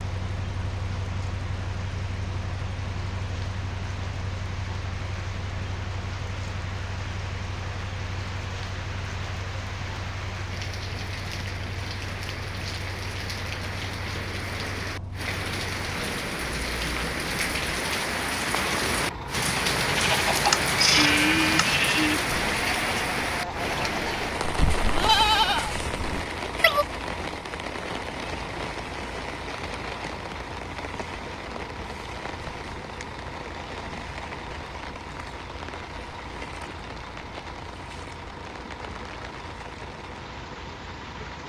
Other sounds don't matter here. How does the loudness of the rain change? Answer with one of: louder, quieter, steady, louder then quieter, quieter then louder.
louder then quieter.